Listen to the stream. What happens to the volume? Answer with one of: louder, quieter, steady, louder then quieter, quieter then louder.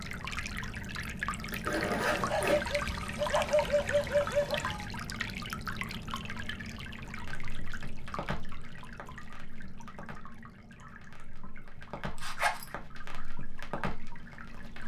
quieter.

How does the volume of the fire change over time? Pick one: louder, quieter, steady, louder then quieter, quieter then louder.
quieter then louder.